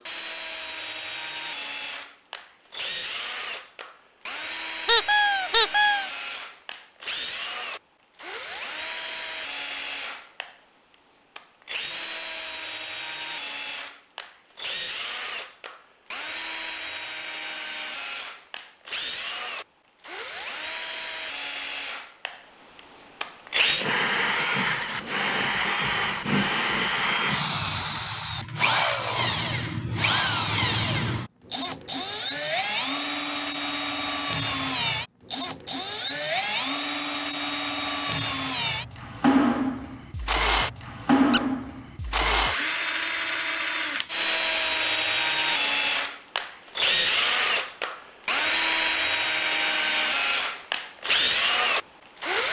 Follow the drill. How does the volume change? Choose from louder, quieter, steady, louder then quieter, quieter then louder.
louder.